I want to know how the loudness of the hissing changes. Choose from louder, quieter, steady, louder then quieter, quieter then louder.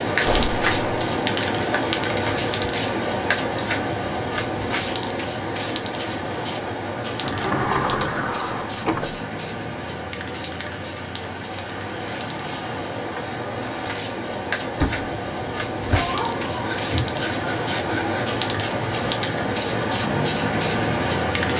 quieter then louder.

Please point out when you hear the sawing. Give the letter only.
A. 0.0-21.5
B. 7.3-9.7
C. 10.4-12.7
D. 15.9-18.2
D.